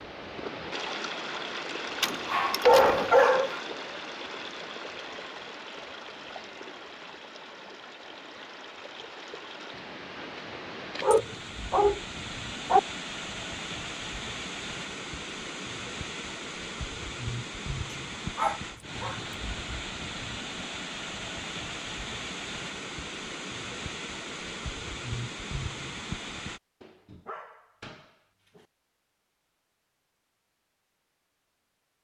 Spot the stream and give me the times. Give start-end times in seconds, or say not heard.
0.0-26.6.